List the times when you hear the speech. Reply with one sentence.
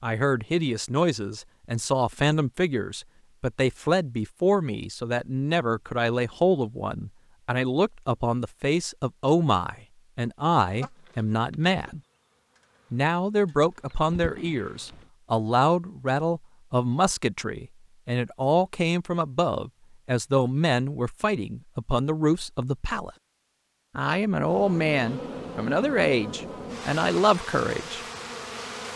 The speech can be heard from 0.0 to 12.0 s, from 12.9 to 23.1 s and from 23.9 to 28.0 s.